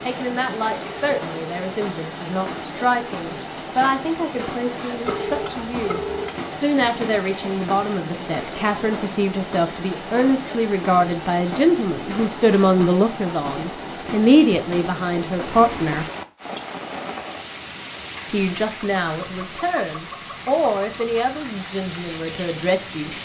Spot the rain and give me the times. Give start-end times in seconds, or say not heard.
0.0-23.1.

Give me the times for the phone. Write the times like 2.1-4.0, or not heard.
5.0-6.3.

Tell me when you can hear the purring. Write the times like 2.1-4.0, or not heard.
not heard.